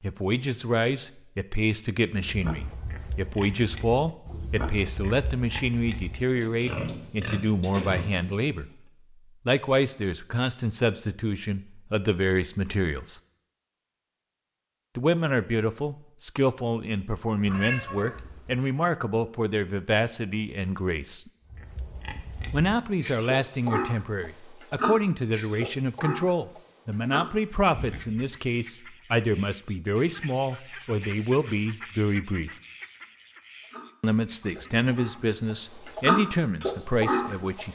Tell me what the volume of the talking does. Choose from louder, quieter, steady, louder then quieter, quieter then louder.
steady.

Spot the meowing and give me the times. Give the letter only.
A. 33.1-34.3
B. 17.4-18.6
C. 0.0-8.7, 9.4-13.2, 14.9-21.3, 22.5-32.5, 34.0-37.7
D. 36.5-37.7
B.